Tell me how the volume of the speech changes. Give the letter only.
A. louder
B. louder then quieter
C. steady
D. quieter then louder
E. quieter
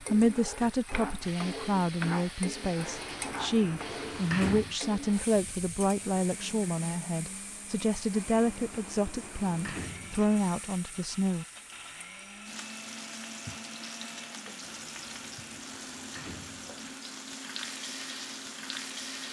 C.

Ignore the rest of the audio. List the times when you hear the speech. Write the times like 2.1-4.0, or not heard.
0.0-11.4.